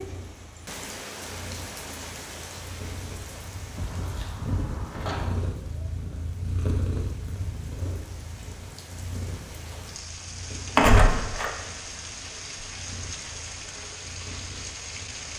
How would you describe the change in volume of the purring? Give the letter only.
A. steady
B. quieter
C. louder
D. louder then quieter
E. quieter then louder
D.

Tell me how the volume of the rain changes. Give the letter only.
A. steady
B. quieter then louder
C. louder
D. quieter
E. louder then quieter
B.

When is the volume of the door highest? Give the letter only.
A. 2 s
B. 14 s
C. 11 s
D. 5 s
C.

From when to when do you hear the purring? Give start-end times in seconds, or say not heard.
0.0-15.3.